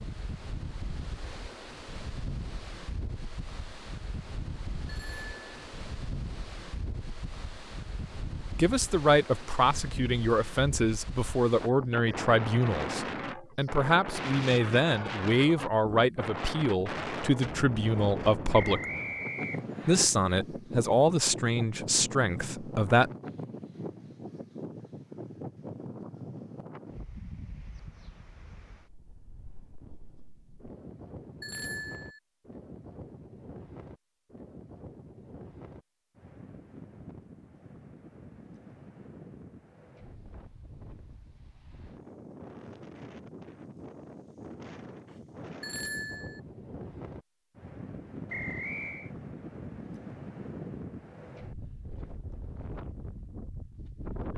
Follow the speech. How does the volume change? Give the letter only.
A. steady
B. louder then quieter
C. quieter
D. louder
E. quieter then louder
A.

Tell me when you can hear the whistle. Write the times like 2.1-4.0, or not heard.
18.5-20.1, 48.2-49.1.